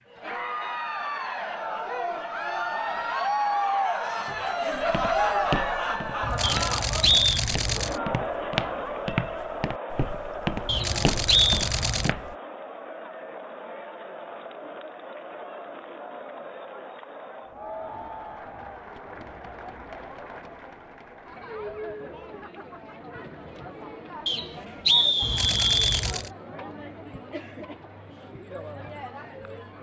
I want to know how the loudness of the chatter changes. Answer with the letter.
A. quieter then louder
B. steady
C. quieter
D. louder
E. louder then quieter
C.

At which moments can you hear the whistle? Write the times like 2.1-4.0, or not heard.
6.4-7.3, 10.7-11.6, 24.2-26.1.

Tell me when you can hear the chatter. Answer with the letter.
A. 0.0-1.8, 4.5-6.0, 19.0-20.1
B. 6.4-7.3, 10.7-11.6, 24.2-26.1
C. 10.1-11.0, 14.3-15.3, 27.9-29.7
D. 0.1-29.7
D.